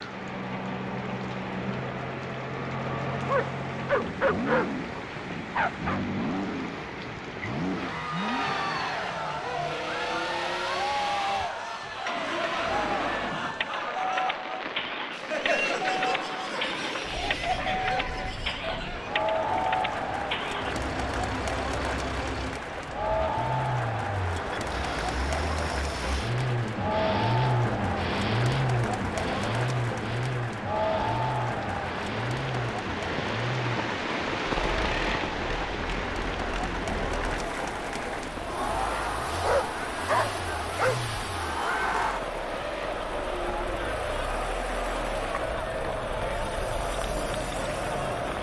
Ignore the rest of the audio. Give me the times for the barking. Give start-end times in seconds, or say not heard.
3.2-6.0, 39.4-41.0.